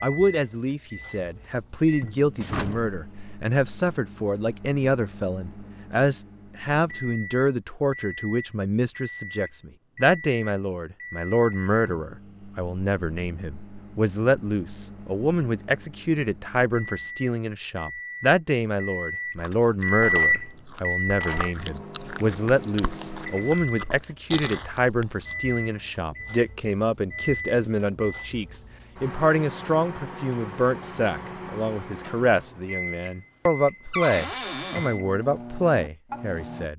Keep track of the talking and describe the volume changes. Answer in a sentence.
The loudness of the talking stays about the same.